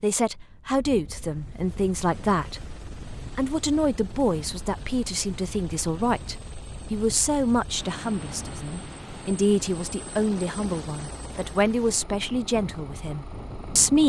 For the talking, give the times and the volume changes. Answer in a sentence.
You can hear the talking from 0.0 to 14.0 s, at a steady volume.